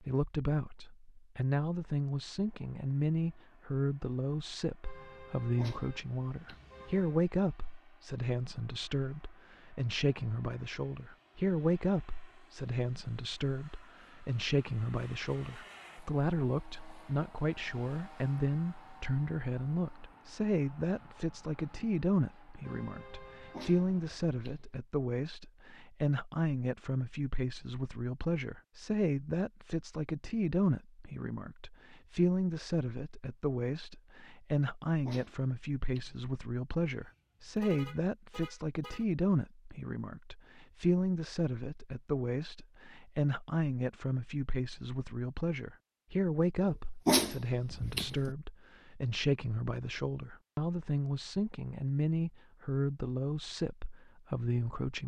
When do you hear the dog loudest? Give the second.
47 s.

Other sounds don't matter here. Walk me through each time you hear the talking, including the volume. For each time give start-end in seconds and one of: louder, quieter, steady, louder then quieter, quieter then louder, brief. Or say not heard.
0.0-55.0 steady.